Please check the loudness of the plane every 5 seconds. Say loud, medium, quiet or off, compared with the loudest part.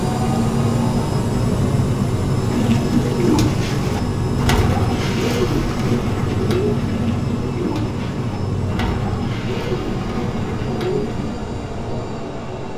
loud, loud, medium.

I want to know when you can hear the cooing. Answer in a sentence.
The cooing can be heard from 2.4 to 11.4 s.